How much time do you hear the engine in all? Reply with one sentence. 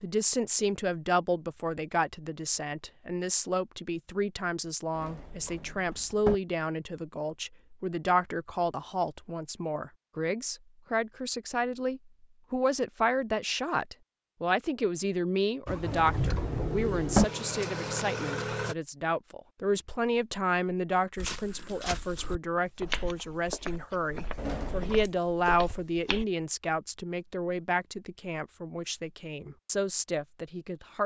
You can hear the engine for 3 seconds altogether.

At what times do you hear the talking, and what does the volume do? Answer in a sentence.
The talking can be heard from 0.0 to 31.0 s, at a steady volume.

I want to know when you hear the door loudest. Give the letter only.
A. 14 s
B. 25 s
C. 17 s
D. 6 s
C.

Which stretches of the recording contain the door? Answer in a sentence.
You can hear the door from 5.0 to 6.3 s, from 15.8 to 17.2 s and from 24.4 to 25.1 s.